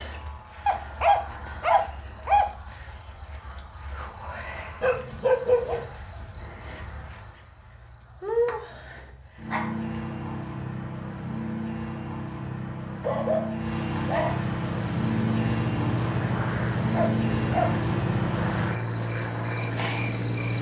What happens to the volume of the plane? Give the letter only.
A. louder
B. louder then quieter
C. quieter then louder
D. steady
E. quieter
D.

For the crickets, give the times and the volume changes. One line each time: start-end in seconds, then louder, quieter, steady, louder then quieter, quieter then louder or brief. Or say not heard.
0.0-20.5 louder.